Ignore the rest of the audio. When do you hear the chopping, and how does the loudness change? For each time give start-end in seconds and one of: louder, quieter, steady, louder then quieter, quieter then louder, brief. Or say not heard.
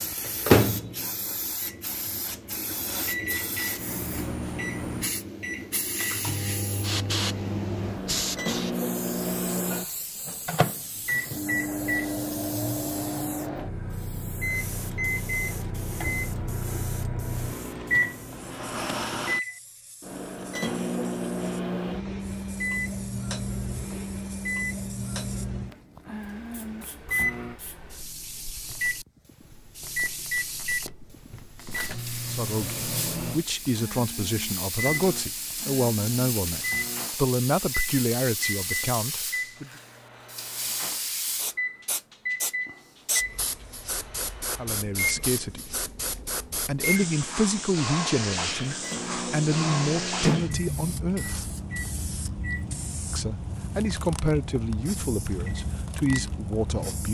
not heard.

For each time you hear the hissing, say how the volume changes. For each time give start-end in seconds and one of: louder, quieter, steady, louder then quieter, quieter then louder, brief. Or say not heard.
0.0-57.1 quieter then louder.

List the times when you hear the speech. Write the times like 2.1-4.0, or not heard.
32.3-39.7, 44.5-45.8, 46.6-51.5, 53.1-57.1.